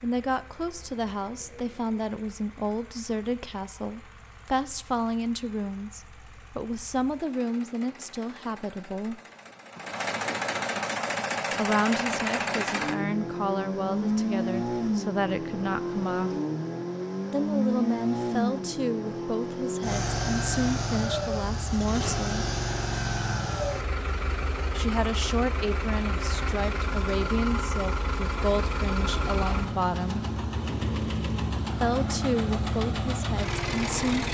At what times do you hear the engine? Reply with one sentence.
You can hear the engine from 0.0 to 34.3 s.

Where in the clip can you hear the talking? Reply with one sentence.
The talking can be heard from 0.0 to 9.2 s, from 11.6 to 16.4 s, from 17.3 to 22.5 s, from 24.8 to 30.2 s and from 31.8 to 34.3 s.